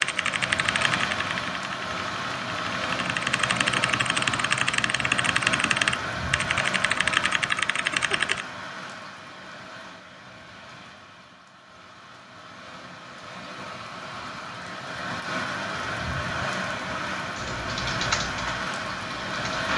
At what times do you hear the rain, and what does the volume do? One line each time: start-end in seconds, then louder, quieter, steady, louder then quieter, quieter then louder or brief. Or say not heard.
0.0-19.7 quieter then louder.